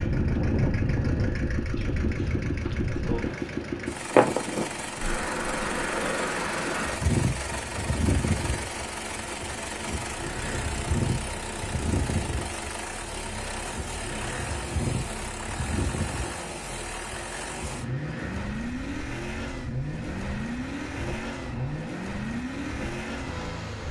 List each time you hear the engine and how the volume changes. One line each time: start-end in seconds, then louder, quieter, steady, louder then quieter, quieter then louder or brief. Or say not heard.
0.0-23.8 steady.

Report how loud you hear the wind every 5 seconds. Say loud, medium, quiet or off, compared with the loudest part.
loud, loud, medium, medium, quiet.